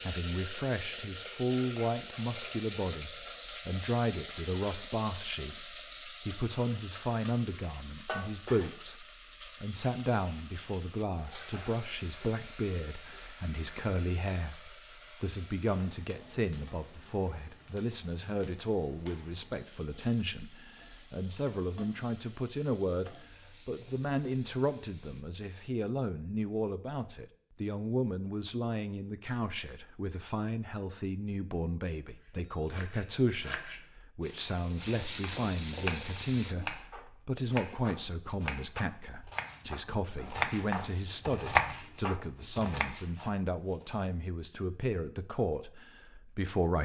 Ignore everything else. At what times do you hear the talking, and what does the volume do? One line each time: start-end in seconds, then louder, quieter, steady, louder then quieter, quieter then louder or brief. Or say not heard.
0.0-46.7 steady.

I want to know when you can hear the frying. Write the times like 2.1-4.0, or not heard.
0.0-25.2, 34.2-36.5.